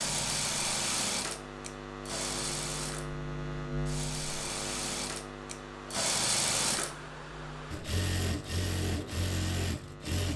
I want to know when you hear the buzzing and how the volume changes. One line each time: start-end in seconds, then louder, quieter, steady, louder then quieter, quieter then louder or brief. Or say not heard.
0.0-10.2 louder then quieter.